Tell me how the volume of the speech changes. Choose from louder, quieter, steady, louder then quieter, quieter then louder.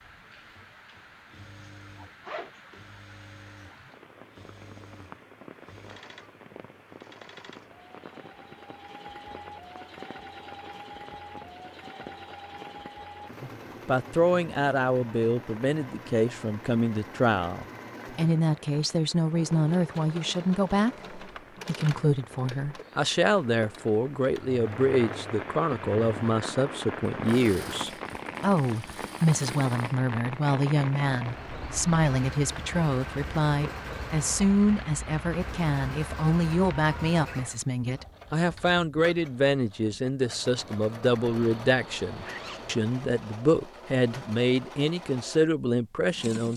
steady.